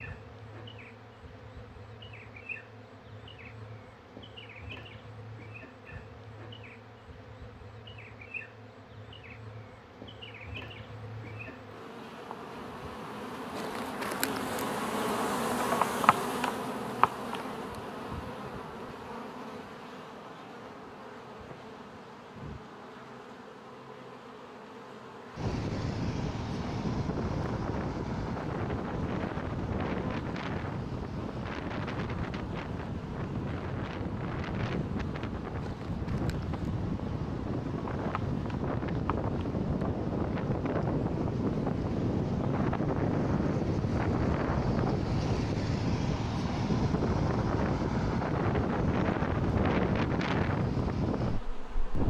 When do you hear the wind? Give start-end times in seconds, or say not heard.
25.4-52.0.